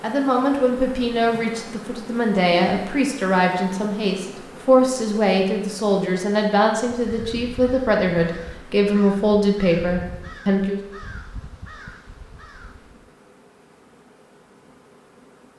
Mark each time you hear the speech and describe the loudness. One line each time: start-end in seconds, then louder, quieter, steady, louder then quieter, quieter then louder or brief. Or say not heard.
0.0-10.8 steady.